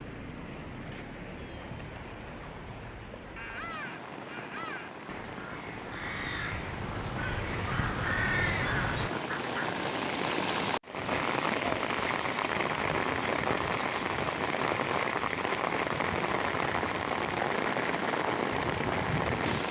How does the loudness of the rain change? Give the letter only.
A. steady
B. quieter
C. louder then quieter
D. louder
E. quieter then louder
D.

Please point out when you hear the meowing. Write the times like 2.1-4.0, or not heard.
0.3-3.0.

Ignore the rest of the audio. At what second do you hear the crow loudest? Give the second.
8 s.